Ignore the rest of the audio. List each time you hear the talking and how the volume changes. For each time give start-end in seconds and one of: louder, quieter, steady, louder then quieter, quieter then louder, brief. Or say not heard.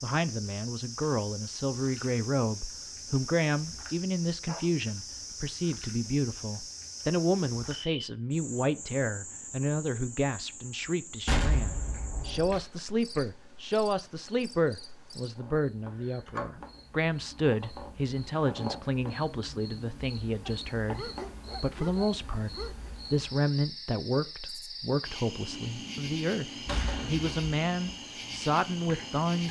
0.0-29.4 steady.